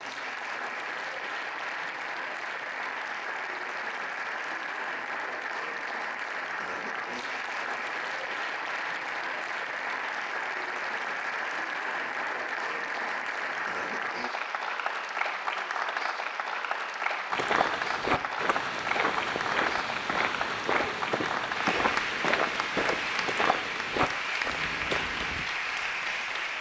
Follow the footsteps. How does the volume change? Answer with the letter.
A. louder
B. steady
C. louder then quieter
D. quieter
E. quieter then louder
B.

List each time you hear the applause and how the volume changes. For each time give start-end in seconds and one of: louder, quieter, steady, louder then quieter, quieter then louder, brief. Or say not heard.
0.0-26.5 steady.